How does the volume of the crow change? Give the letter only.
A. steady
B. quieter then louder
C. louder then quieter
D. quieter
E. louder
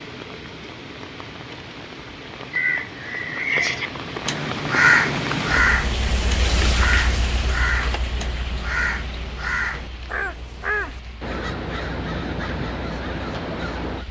D.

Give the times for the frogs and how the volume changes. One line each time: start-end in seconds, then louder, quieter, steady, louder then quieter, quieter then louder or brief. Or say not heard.
not heard.